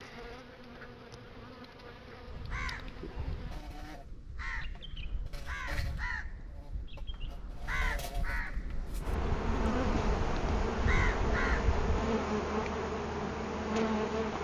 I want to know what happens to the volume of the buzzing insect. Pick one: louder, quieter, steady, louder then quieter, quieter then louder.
louder.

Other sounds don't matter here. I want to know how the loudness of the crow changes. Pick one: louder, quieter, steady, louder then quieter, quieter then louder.
louder.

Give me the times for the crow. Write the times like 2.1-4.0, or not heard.
2.2-12.2.